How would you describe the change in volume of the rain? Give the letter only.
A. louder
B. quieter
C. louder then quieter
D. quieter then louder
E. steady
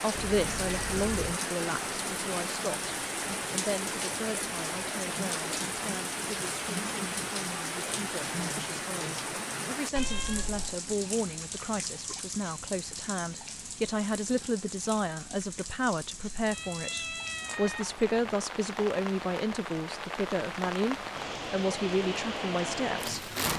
D.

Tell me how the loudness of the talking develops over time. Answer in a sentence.
The loudness of the talking goes down, then up.